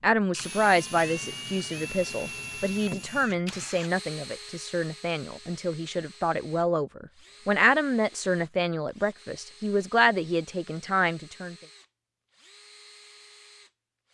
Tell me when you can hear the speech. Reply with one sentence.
You can hear the speech from 0.0 to 11.6 s.